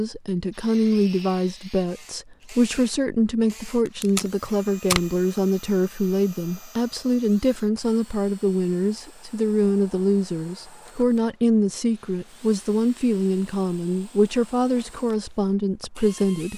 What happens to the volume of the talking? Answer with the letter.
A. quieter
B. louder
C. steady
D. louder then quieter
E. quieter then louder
C.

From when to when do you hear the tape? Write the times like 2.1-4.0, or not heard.
3.9-5.2.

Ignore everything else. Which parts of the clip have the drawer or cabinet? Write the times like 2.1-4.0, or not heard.
not heard.